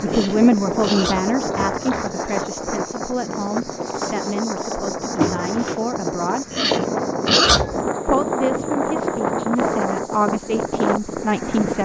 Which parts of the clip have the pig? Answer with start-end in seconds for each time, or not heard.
0.1-2.4, 6.5-7.9.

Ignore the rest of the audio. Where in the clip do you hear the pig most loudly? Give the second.
7 s.